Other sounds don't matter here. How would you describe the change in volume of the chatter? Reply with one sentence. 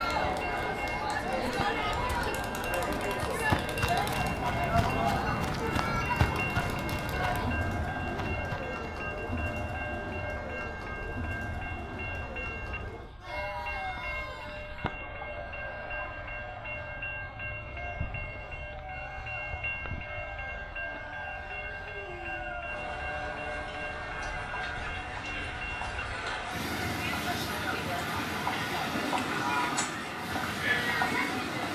The volume of the chatter goes down, then up.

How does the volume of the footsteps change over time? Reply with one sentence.
The volume of the footsteps goes down.